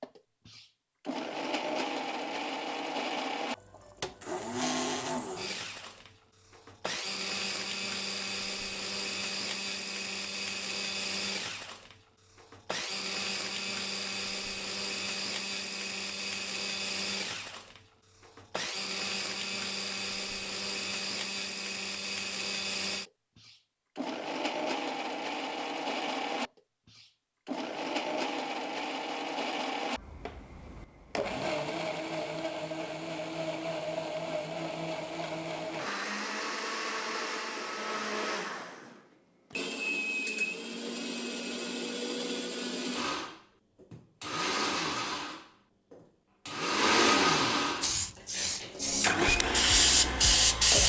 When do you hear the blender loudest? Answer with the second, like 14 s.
47 s.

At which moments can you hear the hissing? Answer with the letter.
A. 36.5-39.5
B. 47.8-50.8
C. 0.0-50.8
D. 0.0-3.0
B.